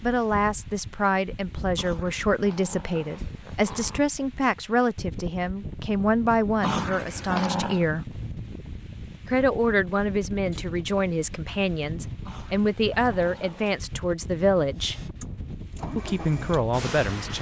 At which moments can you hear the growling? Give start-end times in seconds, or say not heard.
1.8-4.0, 6.6-7.8, 12.2-13.8.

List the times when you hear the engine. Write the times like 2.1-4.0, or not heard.
14.8-17.3.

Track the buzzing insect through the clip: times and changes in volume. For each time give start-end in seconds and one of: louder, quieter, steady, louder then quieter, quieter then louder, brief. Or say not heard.
not heard.